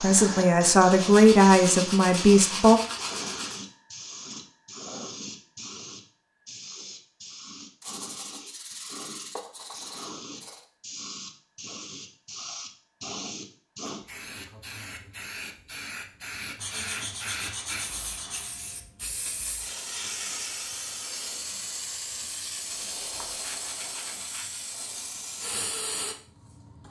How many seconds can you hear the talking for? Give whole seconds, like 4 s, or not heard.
3 s.